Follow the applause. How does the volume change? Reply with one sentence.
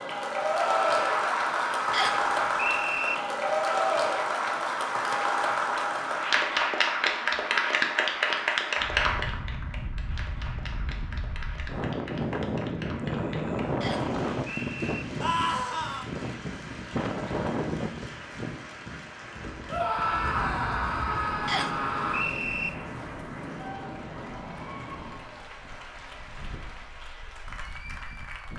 The loudness of the applause goes down.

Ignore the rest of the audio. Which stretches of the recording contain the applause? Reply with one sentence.
You can hear the applause from 0.0 to 28.5 s.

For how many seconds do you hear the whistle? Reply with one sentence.
The whistle can be heard for 4 seconds in total.